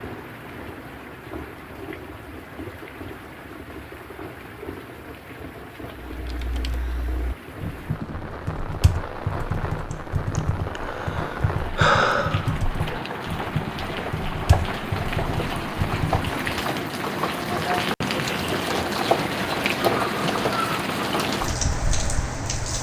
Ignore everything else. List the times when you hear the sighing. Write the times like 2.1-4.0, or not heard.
9.9-12.6.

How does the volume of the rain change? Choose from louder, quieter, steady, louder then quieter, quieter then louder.
louder.